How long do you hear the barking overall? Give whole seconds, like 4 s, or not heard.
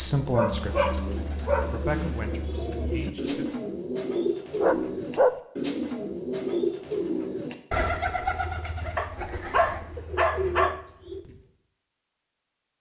4 s.